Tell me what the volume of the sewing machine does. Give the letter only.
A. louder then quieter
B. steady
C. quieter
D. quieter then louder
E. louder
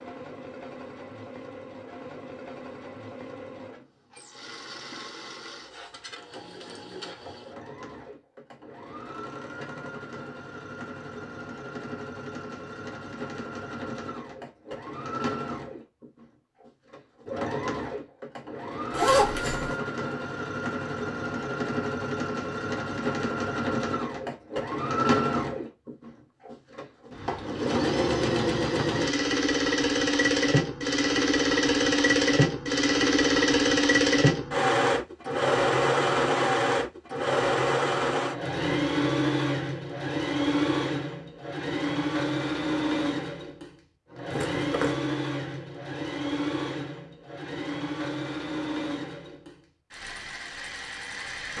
A.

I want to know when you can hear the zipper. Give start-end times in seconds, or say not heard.
18.9-19.8, 44.3-45.0.